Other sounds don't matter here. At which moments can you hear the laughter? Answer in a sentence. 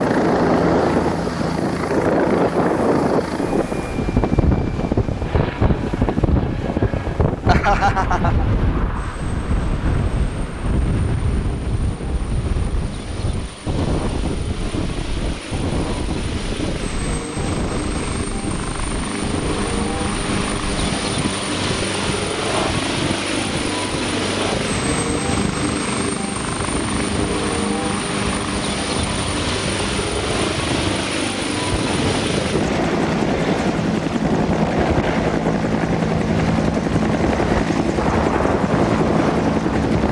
You can hear the laughter from 7.5 to 8.4 s.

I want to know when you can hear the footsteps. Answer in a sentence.
The footsteps can't be heard in this clip.